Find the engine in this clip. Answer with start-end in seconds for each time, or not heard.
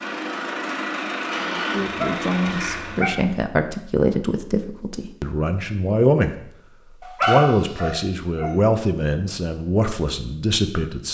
0.0-3.2.